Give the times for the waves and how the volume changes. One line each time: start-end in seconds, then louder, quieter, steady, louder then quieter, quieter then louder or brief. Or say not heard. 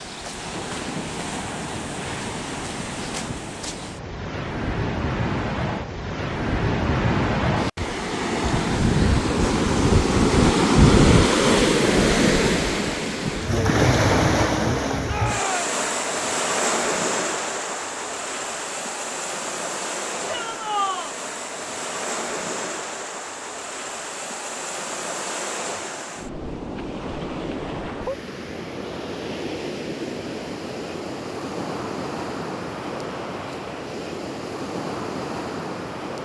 0.0-36.2 louder then quieter.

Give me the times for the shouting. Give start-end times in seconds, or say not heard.
15.1-15.7, 20.2-21.1.